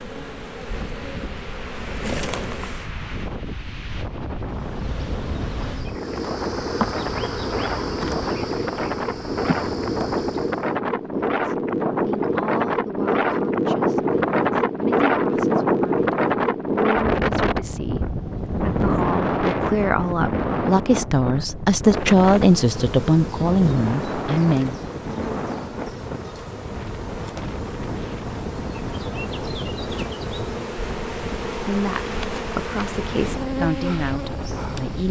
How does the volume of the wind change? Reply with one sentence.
The loudness of the wind goes up, then down.